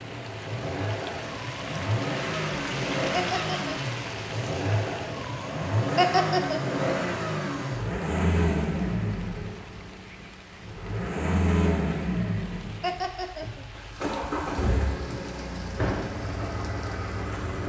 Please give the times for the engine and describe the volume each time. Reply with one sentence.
You can hear the engine from 0.0 to 17.6 s, at a steady volume.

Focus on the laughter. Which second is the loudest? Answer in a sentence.
The volume of the laughter peaks at 6 seconds.